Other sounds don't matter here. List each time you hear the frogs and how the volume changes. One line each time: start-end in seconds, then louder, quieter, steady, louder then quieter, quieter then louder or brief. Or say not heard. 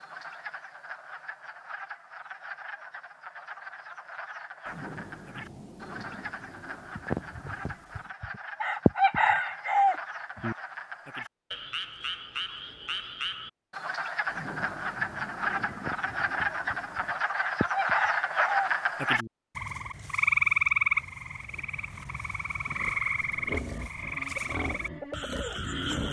0.0-26.0 louder.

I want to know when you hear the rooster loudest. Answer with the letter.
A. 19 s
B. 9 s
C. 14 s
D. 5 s
B.